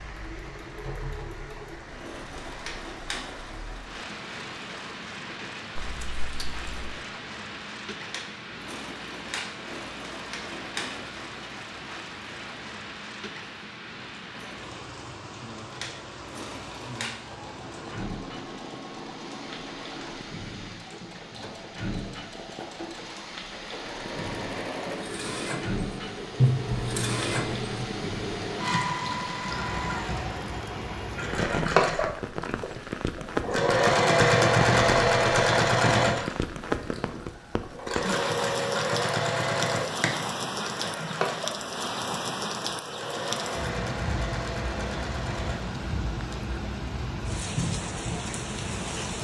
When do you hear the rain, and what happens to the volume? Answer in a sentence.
The rain can be heard from 0.0 to 49.1 s, getting louder.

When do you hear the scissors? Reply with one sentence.
The scissors can be heard from 5.8 to 6.7 s and from 26.4 to 27.9 s.